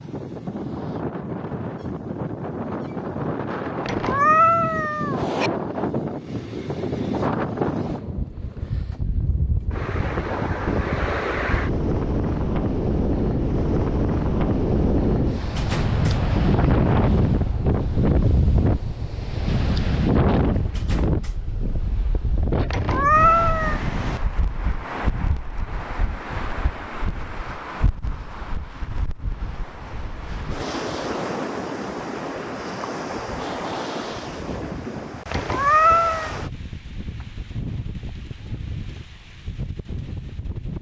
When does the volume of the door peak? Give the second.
16 s.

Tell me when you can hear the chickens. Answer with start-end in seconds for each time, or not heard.
not heard.